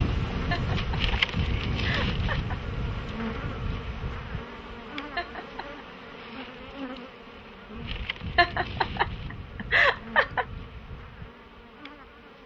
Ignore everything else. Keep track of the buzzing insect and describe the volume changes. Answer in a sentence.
The volume of the buzzing insect goes down.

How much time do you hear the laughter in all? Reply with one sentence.
The laughter can be heard for 5 seconds in total.